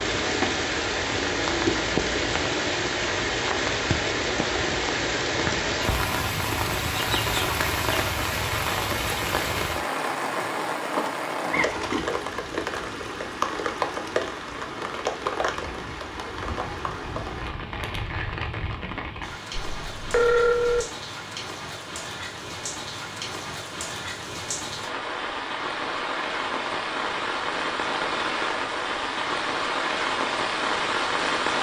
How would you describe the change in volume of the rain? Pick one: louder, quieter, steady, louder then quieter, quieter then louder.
quieter then louder.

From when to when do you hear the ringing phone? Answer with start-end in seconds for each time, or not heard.
19.6-20.9.